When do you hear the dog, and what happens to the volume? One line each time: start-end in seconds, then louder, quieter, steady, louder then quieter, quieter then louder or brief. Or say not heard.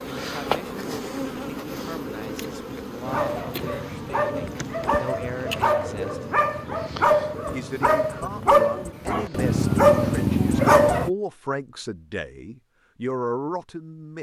3.0-11.1 louder.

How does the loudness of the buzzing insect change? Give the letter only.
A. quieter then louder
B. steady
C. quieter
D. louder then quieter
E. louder
C.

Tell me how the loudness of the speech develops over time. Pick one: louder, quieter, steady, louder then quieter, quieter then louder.
louder.